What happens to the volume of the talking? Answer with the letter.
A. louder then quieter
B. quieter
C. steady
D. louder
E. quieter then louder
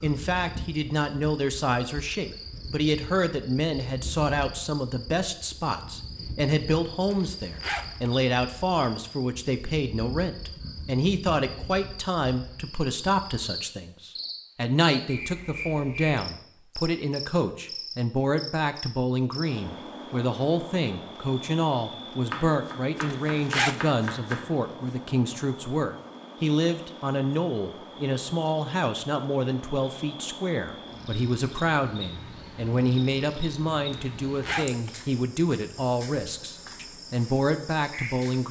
C.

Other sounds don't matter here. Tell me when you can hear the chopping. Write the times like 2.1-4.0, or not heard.
22.3-24.9.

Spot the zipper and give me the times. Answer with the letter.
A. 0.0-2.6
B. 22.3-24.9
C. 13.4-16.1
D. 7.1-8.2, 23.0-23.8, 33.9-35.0
D.